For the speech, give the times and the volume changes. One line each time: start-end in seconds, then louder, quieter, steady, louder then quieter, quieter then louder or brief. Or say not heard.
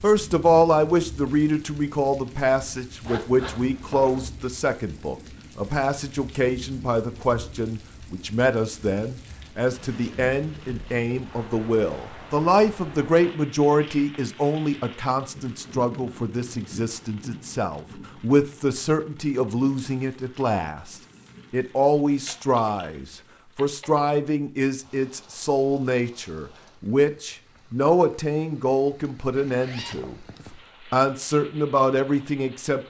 0.0-30.1 steady
30.9-32.8 brief.